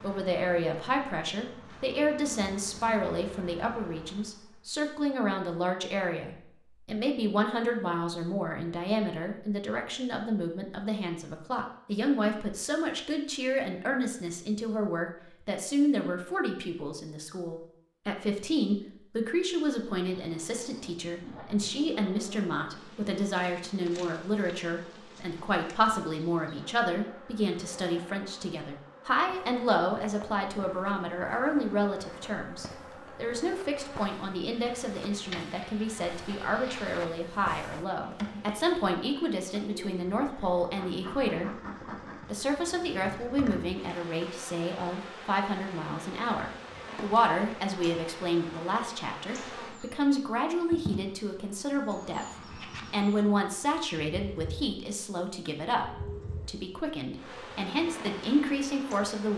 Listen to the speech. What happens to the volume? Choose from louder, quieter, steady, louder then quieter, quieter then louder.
steady.